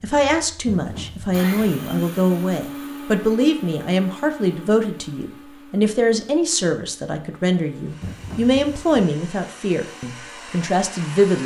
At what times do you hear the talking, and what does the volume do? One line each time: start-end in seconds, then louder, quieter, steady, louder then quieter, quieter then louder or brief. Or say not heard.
0.0-11.4 steady.